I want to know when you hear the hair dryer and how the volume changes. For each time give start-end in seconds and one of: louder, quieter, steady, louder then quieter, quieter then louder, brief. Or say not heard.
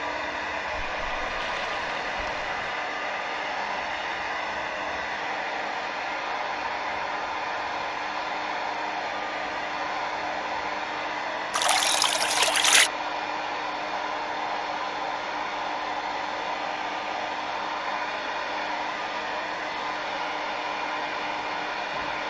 0.0-22.2 steady.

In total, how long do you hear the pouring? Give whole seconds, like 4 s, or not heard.
3 s.